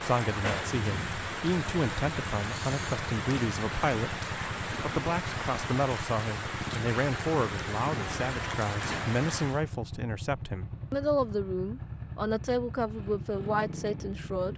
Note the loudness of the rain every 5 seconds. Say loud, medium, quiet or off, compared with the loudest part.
loud, loud, off.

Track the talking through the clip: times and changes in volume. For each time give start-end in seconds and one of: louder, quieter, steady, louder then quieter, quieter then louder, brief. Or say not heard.
0.0-14.5 steady.